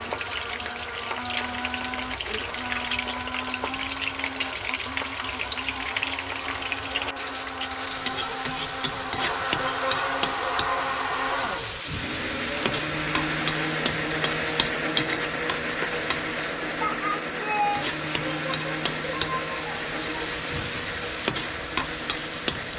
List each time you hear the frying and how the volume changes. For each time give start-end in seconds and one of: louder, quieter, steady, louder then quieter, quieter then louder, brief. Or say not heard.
0.0-22.7 steady.